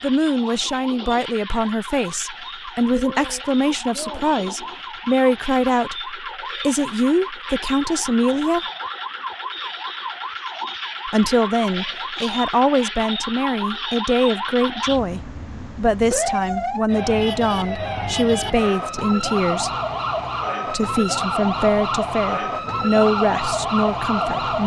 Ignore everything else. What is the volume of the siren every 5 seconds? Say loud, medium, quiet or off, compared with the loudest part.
medium, medium, medium, loud, loud.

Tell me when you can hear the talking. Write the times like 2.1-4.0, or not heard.
0.0-8.7, 11.1-19.7, 20.7-24.6.